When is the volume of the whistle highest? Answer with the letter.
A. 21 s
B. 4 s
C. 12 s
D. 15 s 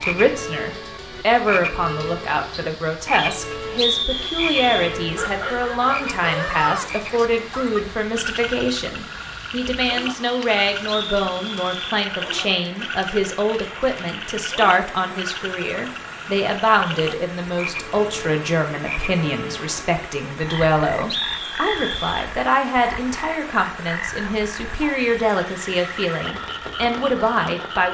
B.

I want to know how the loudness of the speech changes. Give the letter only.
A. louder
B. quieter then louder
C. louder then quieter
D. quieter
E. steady
E.